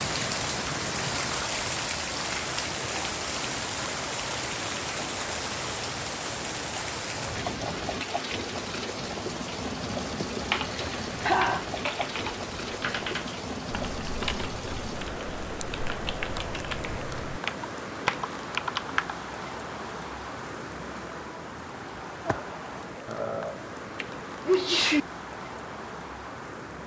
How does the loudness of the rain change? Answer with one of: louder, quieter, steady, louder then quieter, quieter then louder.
quieter.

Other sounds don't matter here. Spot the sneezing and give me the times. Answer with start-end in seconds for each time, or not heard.
10.1-11.7, 23.1-25.0.